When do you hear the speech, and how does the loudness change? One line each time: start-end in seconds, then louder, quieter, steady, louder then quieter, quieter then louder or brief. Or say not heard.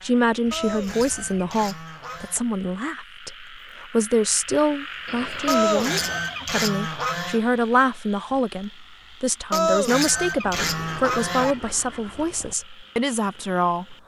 0.0-13.9 steady.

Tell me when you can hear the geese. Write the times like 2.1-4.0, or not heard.
0.5-2.4, 5.5-7.4, 9.5-11.6.